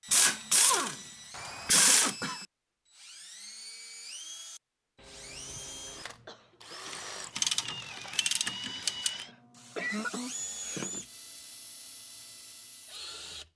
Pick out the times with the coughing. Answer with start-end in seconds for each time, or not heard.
1.7-2.5, 5.0-7.0, 9.0-10.8.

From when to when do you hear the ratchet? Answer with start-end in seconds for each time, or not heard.
0.1-2.1, 6.8-9.2.